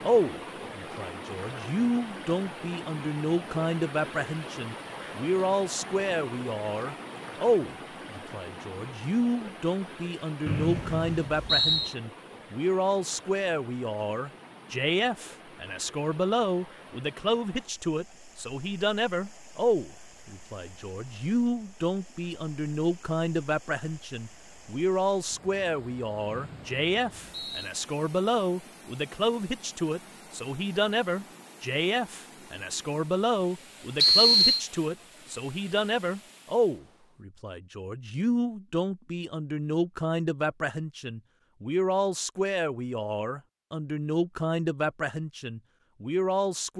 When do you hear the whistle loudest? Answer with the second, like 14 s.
34 s.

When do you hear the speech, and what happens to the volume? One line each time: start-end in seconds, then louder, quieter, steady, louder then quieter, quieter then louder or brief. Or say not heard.
0.0-46.7 steady.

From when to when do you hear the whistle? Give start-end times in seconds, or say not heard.
10.4-11.9, 26.3-27.7, 34.0-34.6.